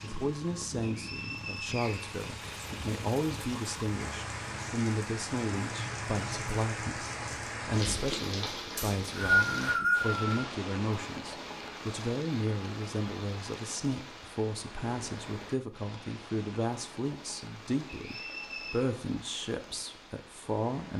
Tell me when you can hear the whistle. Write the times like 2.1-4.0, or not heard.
0.8-2.1, 8.8-10.4, 17.9-18.8.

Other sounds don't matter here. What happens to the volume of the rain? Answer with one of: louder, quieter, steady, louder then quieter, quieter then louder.
louder then quieter.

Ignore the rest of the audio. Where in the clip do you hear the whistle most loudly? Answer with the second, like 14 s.
9 s.